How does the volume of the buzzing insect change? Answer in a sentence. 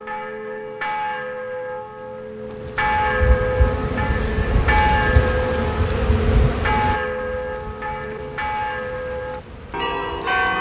The volume of the buzzing insect goes down.